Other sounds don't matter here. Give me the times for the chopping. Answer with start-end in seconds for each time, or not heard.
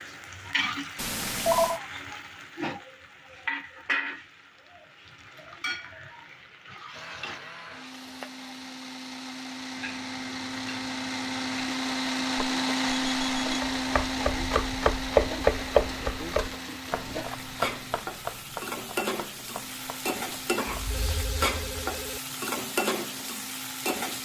13.6-21.0.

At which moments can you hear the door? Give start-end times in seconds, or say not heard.
not heard.